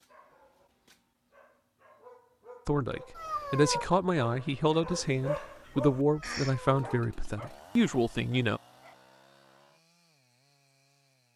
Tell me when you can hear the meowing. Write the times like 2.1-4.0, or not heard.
3.1-3.9, 6.1-7.0.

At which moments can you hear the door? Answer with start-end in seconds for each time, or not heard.
not heard.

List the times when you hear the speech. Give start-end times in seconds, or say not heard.
2.6-8.6.